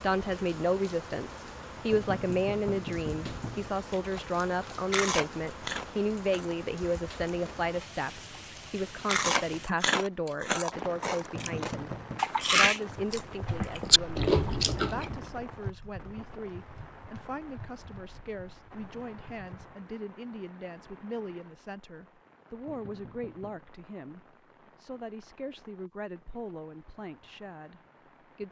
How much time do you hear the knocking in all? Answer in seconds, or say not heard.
4 s.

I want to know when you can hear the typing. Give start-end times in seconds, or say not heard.
12.8-19.8.